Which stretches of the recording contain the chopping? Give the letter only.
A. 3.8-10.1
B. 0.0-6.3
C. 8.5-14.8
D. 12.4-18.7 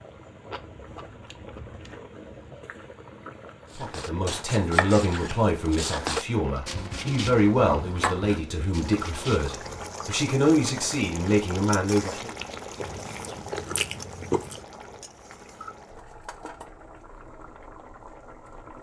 A.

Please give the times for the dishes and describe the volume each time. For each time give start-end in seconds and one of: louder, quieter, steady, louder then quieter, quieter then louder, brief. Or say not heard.
not heard.